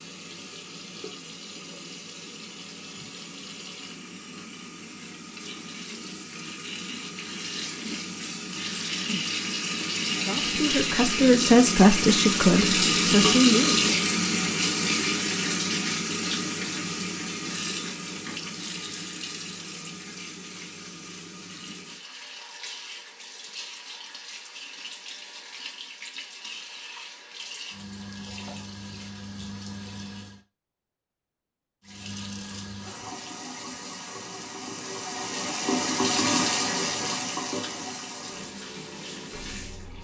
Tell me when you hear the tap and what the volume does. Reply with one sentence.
You can hear the tap from 0.0 to 30.4 s, getting louder then quieter; and from 31.8 to 39.9 s, getting louder then quieter.